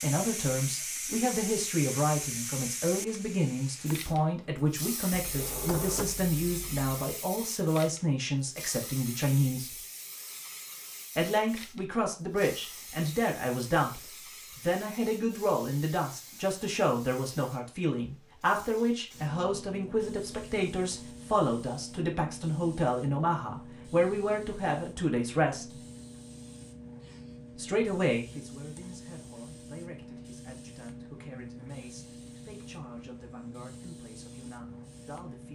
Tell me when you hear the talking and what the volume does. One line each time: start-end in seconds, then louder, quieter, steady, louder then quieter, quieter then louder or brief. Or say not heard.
0.0-9.8 steady
11.2-25.8 steady
27.6-35.5 quieter.